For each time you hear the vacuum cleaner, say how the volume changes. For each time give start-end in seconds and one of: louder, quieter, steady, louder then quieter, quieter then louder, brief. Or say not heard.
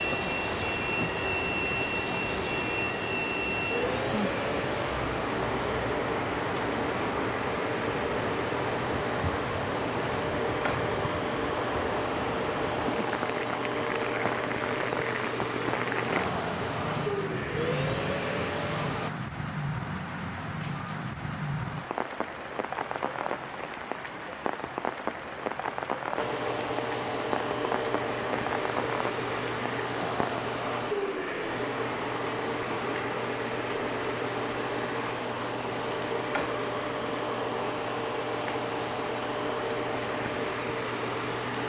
0.0-19.1 steady
26.1-41.6 steady.